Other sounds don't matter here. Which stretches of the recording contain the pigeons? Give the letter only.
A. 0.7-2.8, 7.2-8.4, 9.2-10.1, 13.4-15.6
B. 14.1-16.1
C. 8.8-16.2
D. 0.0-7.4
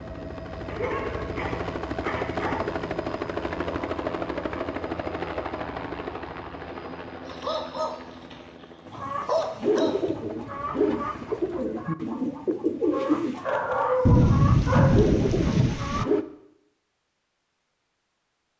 C.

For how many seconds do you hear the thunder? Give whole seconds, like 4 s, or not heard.
2 s.